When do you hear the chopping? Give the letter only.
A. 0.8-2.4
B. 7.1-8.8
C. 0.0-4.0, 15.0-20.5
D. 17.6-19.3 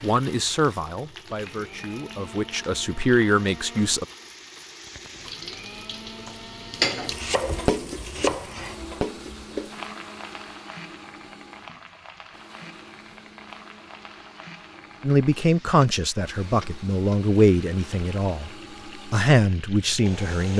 B.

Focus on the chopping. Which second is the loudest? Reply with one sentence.
The volume of the chopping peaks at 8 seconds.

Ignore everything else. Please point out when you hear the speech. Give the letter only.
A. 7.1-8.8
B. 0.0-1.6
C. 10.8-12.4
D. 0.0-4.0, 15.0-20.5
D.